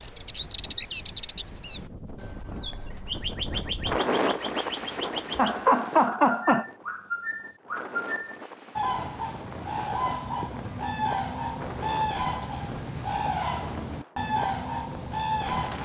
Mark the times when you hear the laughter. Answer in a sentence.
The laughter can be heard from 5.3 to 6.7 s.